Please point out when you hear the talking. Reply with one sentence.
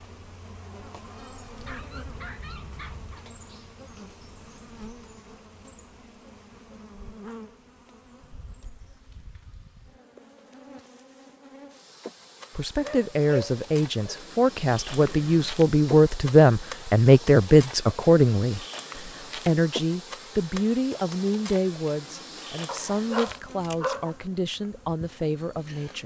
You can hear the talking from 12.6 to 26.0 s.